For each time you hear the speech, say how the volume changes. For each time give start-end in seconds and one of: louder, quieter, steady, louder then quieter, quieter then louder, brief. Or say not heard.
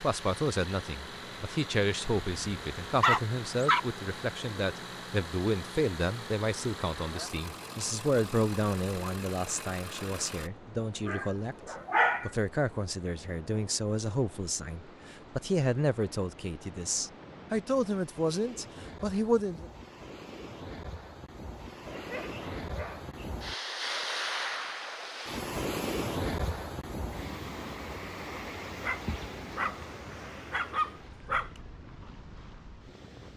0.0-19.6 steady.